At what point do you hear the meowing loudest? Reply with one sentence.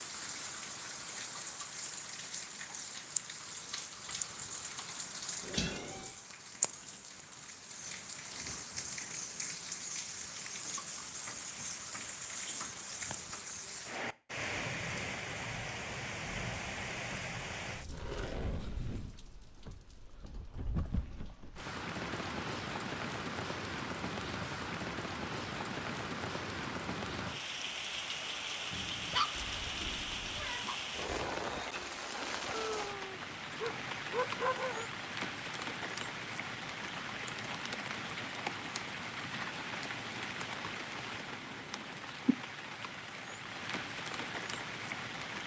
The loudest moment of the meowing is at 6 seconds.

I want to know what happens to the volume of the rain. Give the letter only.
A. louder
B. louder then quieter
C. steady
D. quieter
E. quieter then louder
C.